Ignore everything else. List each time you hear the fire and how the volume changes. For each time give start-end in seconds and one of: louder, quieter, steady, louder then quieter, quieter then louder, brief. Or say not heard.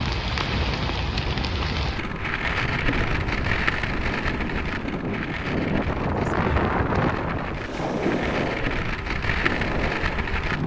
0.0-10.6 quieter then louder.